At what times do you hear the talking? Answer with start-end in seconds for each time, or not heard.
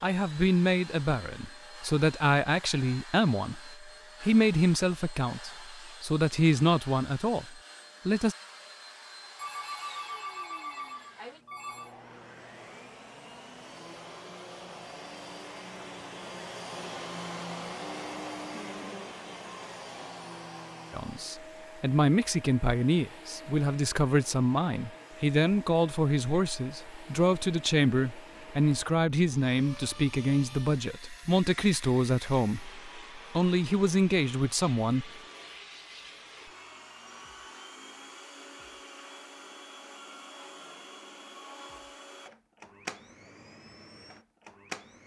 0.0-8.3, 20.9-35.1.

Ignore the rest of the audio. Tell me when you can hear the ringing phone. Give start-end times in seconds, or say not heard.
9.3-11.9.